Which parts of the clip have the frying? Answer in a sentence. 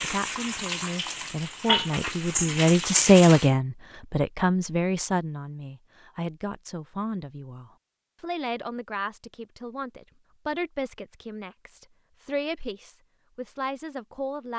The frying can be heard from 0.0 to 3.5 s.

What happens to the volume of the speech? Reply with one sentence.
The loudness of the speech goes down.